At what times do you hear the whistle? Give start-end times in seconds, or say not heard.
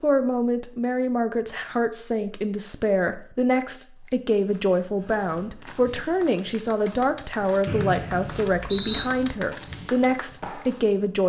7.7-9.1.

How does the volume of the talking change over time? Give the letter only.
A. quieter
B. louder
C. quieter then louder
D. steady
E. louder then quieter
D.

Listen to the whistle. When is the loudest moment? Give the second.
9 s.